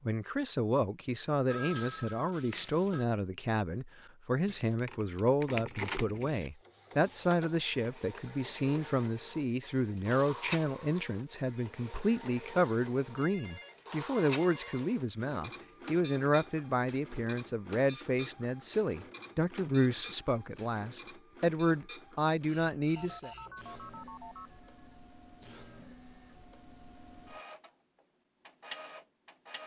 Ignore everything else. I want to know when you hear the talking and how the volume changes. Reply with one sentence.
You can hear the talking from 0.1 to 23.3 s, at a steady volume.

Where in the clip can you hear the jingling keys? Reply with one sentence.
You can hear the jingling keys from 4.5 to 6.5 s.